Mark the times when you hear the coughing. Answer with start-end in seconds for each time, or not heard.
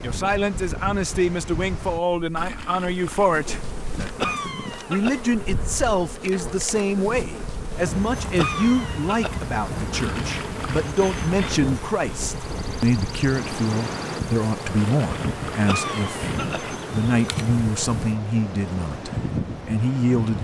4.2-5.2, 8.3-9.4, 15.7-16.7.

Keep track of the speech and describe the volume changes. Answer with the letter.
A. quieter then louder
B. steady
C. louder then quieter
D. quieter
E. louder
B.